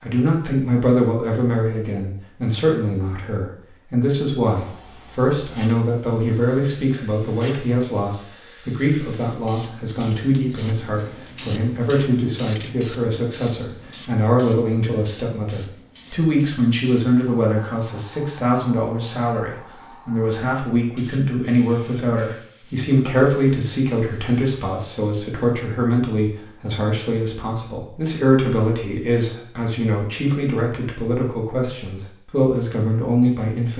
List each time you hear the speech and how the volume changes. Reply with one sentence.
You can hear the speech from 0.0 to 33.7 s, at a steady volume.